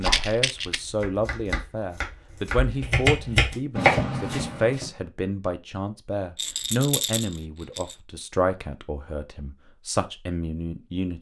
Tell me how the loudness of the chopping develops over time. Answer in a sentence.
The volume of the chopping goes up.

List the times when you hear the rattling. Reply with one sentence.
You can hear the rattling from 0.0 to 0.8 s and from 6.3 to 8.0 s.